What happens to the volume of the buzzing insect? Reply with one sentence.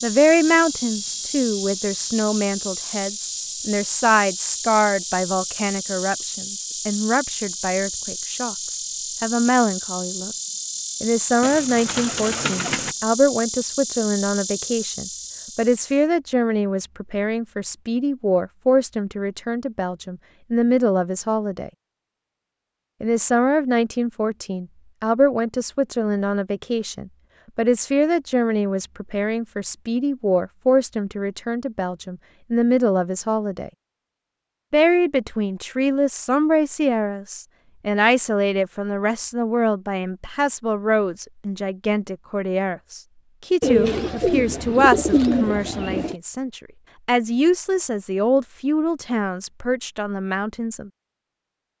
The volume of the buzzing insect stays about the same.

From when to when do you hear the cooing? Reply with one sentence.
You can hear the cooing from 11.4 to 12.9 s and from 43.6 to 46.1 s.